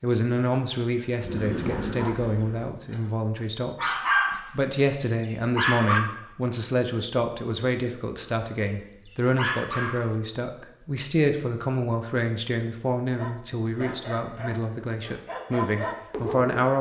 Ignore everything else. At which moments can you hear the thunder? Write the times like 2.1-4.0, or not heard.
1.2-2.7.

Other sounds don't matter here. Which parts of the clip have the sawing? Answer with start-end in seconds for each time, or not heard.
not heard.